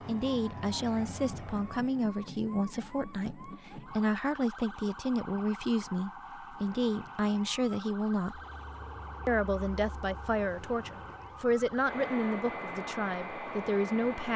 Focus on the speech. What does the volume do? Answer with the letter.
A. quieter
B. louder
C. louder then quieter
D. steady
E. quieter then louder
D.